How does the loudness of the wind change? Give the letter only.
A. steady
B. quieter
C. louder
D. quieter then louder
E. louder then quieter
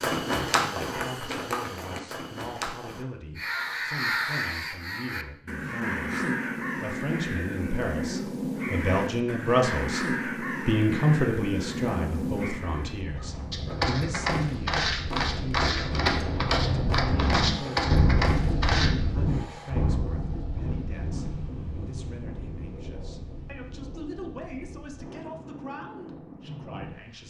E.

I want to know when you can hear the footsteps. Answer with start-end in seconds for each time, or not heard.
0.0-3.0, 13.5-18.9.